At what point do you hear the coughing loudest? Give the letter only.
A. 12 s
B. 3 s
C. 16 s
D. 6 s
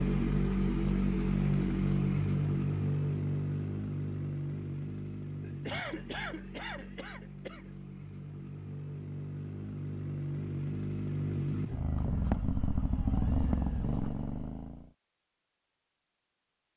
D.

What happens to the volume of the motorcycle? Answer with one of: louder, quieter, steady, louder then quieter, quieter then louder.
quieter then louder.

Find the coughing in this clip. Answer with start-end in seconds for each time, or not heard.
5.4-7.7.